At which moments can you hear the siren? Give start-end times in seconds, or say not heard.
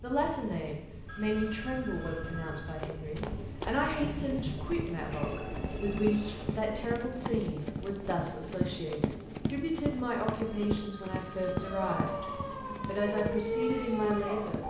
11.6-14.6.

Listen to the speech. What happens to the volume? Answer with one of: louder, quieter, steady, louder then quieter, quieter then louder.
steady.